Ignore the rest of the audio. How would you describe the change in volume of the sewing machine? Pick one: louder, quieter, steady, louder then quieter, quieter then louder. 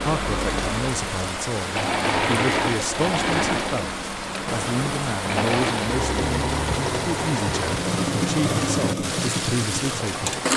steady.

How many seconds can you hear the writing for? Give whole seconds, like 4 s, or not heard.
not heard.